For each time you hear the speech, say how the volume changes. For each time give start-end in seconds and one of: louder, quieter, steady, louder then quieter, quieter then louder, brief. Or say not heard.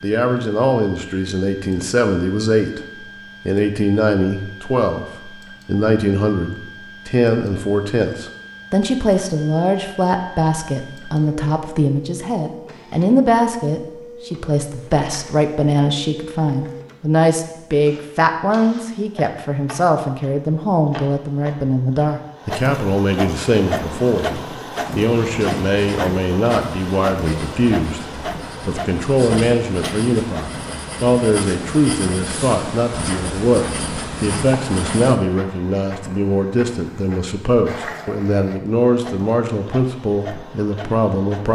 0.0-2.9 brief
3.5-41.5 steady.